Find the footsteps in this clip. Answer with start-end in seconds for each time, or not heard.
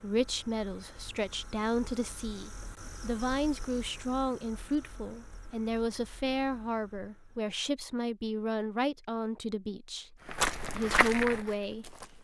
10.2-12.1.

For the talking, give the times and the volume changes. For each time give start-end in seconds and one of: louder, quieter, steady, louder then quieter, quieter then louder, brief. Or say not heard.
0.0-12.0 steady.